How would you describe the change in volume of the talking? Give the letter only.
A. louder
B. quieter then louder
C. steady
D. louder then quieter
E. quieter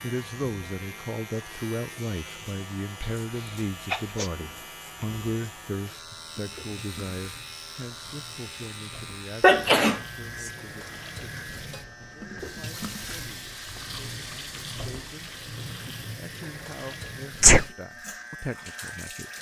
B.